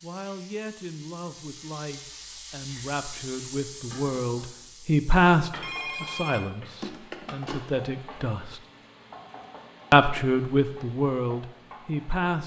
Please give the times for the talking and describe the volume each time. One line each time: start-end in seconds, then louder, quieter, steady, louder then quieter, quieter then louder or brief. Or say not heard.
0.0-8.6 louder then quieter
9.9-12.4 brief.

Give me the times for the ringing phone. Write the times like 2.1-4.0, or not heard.
5.6-7.7.